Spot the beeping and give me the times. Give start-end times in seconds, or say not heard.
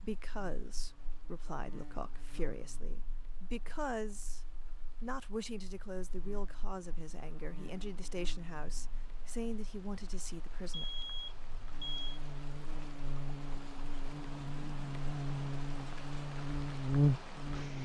10.7-12.2.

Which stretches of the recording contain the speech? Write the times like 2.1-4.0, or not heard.
0.0-4.4, 5.0-10.8.